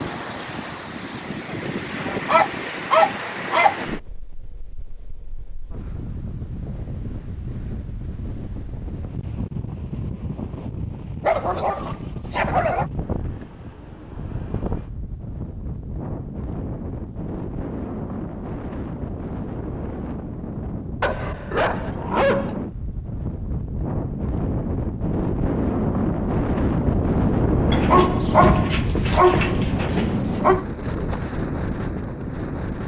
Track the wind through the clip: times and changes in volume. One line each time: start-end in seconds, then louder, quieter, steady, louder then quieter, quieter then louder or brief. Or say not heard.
0.0-32.8 louder.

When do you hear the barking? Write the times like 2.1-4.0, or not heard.
2.2-3.8, 11.2-12.9, 21.0-22.6, 27.7-30.6.